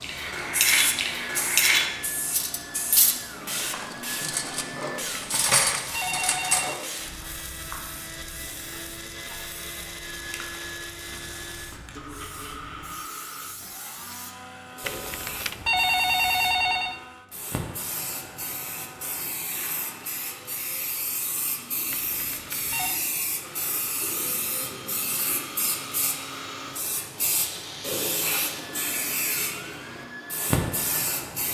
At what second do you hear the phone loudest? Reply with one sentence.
The loudest moment of the phone is at 16 seconds.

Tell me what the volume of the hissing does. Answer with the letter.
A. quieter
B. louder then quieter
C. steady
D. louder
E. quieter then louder
E.